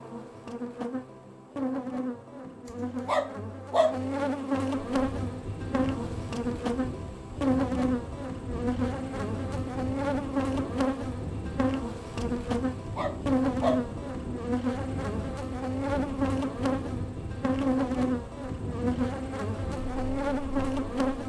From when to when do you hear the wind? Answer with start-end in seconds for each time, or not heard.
4.9-21.2.